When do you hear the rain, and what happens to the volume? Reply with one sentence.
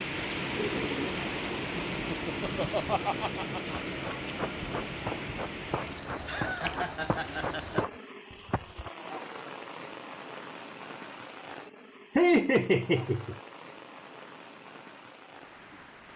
You can hear the rain from 0.0 to 16.1 s, getting quieter.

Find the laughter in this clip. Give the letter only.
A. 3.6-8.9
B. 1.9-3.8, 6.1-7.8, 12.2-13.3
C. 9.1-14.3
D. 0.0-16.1
B.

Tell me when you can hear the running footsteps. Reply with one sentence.
The running footsteps can be heard from 3.6 to 8.9 s.